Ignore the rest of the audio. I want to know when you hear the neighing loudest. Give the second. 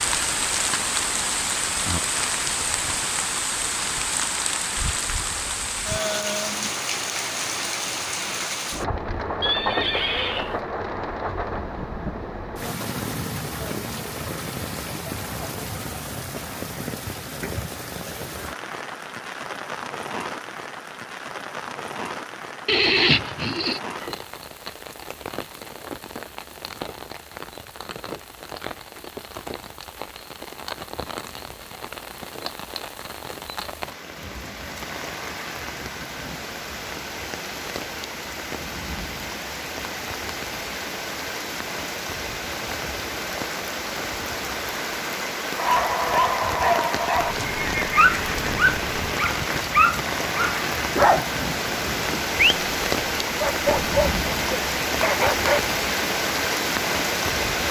23 s.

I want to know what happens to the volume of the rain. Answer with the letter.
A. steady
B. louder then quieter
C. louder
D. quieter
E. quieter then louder
E.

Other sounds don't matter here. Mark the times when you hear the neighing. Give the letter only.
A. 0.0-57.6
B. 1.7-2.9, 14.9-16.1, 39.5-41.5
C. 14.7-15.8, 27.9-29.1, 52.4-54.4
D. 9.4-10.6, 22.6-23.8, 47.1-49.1
D.